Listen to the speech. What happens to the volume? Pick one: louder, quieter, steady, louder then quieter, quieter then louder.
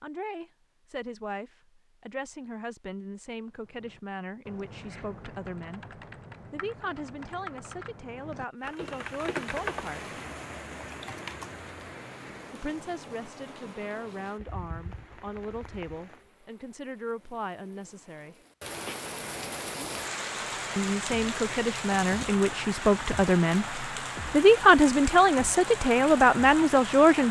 louder.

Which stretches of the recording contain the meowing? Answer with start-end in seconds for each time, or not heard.
not heard.